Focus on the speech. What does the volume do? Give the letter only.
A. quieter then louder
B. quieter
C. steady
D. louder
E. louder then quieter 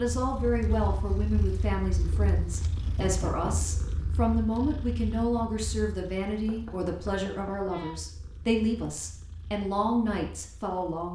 C.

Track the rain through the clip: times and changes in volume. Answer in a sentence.
You can't hear the rain here.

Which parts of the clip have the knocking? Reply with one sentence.
The knocking can be heard from 2.9 to 3.8 s and from 6.5 to 7.7 s.